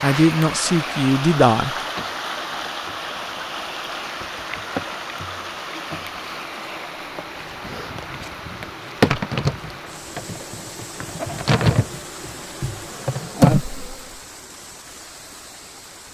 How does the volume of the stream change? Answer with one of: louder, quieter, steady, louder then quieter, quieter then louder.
quieter.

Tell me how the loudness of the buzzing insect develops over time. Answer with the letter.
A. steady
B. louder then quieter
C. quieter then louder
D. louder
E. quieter
D.